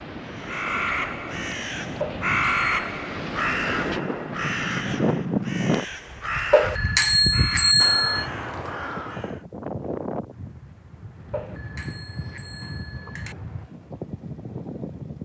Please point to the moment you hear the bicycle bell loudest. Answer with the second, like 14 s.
8 s.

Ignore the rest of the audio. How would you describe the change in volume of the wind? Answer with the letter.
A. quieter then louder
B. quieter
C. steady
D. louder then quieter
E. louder
D.